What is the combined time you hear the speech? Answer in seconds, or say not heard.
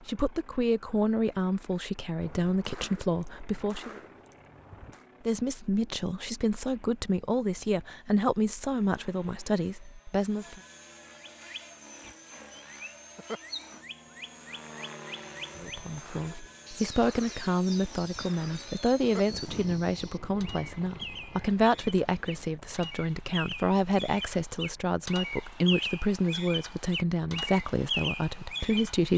23 s.